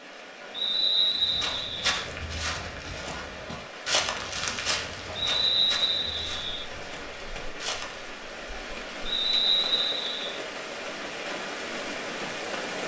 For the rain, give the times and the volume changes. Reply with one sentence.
The rain can be heard from 0.0 to 12.8 s, getting louder.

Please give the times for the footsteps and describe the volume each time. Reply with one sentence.
You can hear the footsteps from 1.2 to 8.2 s, getting quieter.